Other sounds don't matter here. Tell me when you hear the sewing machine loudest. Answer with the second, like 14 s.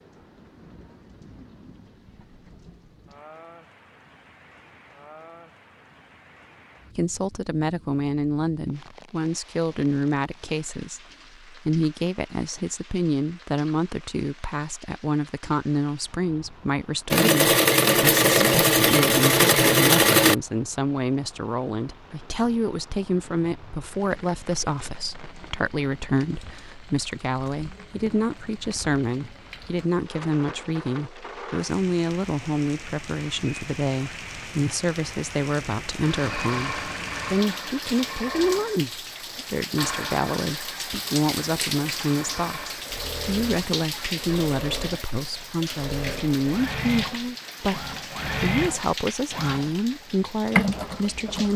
20 s.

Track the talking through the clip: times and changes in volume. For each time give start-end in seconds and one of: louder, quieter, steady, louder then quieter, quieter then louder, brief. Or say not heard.
7.0-51.5 steady.